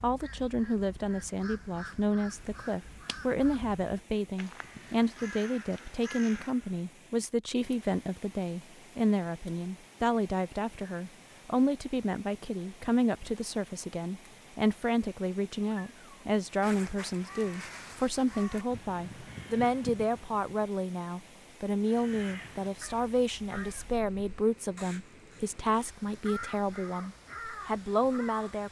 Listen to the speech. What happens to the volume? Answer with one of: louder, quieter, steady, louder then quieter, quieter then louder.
steady.